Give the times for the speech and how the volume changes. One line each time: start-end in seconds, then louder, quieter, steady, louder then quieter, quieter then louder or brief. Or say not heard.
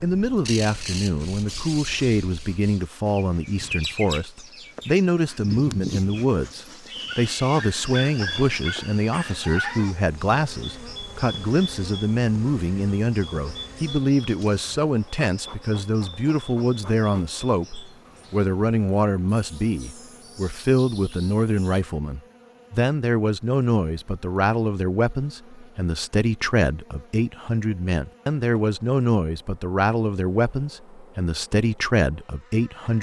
0.0-32.9 steady.